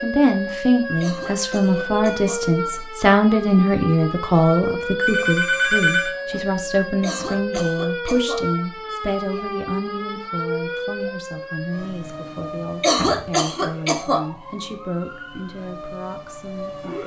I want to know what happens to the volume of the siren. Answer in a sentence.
The loudness of the siren goes down.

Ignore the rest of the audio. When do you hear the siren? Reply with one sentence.
You can hear the siren from 0.0 to 17.0 s.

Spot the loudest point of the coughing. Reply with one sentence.
The loudest moment of the coughing is at 13 seconds.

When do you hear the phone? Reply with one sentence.
The phone can be heard from 5.0 to 6.2 s.